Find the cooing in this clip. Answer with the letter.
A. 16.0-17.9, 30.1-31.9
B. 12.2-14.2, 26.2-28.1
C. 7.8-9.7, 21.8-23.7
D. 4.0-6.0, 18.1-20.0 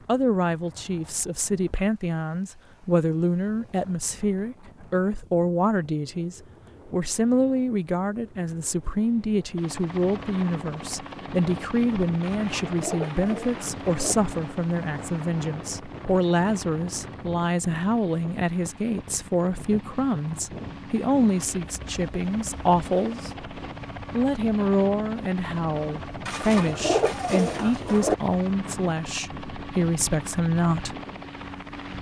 B.